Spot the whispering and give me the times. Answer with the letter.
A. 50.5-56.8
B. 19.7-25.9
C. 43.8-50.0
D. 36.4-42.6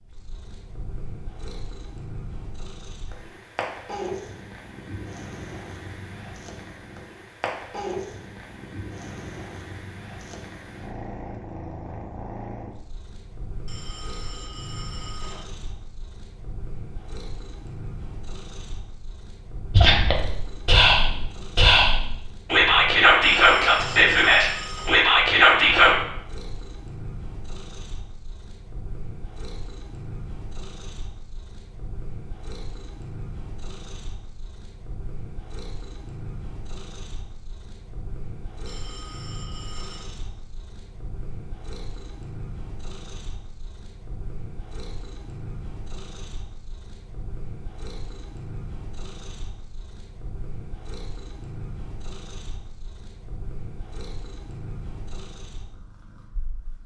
B.